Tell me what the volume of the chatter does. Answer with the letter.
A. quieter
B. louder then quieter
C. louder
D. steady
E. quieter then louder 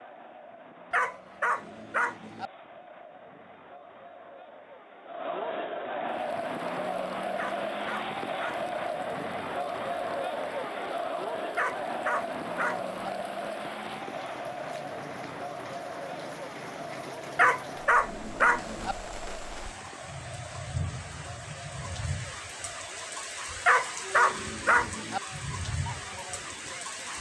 B.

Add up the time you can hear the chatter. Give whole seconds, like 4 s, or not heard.
27 s.